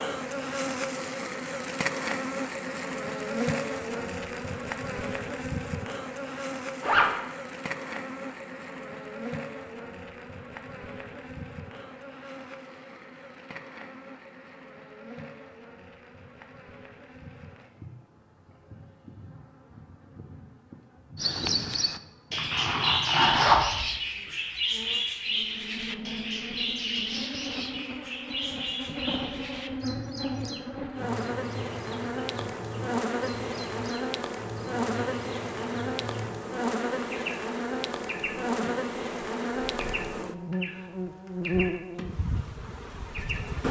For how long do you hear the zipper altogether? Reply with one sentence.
You can hear the zipper for 2 seconds altogether.